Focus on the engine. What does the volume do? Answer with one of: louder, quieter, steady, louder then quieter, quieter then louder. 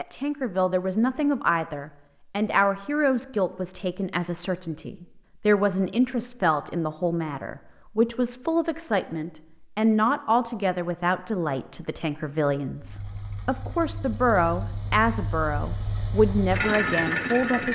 louder.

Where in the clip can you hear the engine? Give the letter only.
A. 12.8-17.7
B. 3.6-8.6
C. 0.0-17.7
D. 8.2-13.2
A.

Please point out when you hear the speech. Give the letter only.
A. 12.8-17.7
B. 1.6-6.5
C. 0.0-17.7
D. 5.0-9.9
C.